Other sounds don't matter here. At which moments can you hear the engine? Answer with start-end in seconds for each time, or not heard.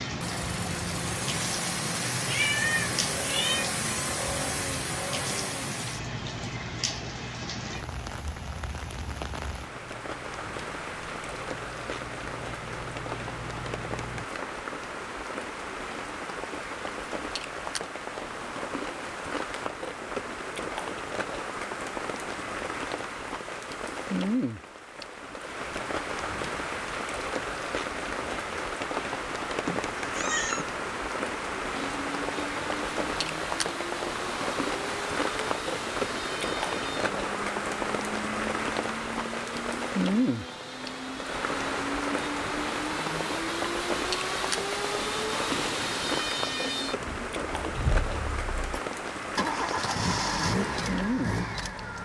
0.0-14.2, 31.7-52.0.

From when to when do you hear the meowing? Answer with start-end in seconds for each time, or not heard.
2.2-3.7, 29.6-30.6.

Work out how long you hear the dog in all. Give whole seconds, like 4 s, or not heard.
not heard.